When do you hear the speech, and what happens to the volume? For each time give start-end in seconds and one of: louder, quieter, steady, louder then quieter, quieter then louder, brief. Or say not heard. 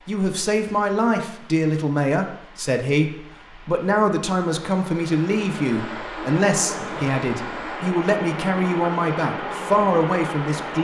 0.1-10.7 steady.